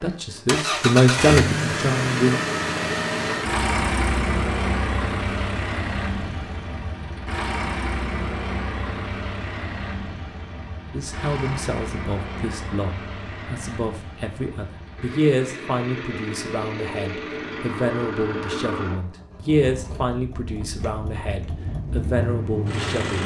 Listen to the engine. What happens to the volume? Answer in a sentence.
The loudness of the engine goes down.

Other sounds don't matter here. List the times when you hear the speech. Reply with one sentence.
You can hear the speech from 0.0 to 2.4 s and from 10.9 to 23.2 s.